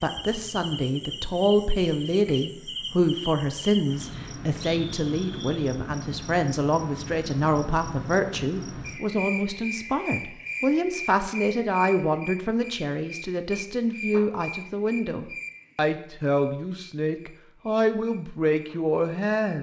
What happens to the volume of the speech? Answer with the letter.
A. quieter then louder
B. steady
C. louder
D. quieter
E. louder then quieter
B.